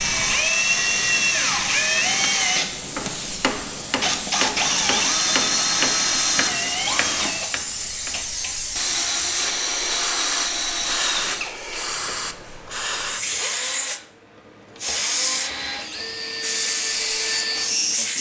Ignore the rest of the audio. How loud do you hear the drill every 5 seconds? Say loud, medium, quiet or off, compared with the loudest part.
loud, loud, medium, medium.